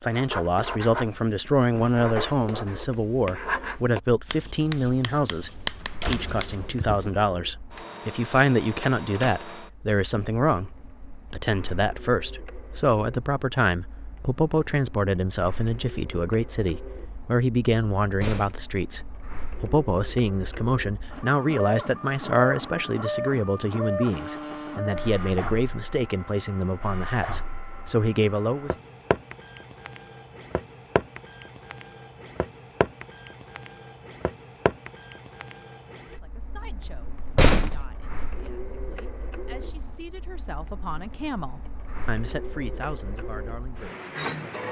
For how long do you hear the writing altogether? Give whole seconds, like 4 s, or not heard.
7 s.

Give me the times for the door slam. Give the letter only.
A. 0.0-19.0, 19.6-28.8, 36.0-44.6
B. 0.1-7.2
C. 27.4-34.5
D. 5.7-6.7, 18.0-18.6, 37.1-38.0
D.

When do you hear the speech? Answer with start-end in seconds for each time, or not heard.
0.0-19.0, 19.6-28.8, 36.0-44.6.